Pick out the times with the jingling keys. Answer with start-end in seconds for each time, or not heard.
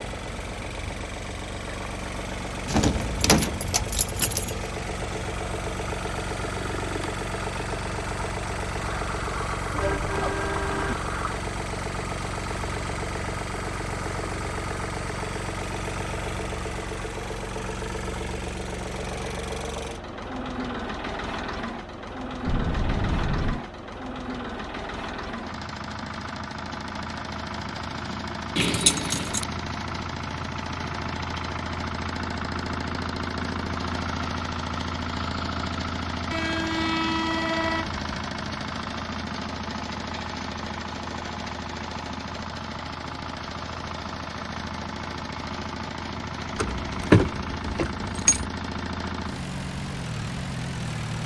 2.6-4.7, 28.6-29.4, 46.5-48.5.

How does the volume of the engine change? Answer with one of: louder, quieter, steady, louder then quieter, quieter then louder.
steady.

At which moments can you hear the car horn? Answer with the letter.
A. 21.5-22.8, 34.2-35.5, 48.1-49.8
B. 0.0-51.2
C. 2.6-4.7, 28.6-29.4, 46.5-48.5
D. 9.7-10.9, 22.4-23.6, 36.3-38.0
D.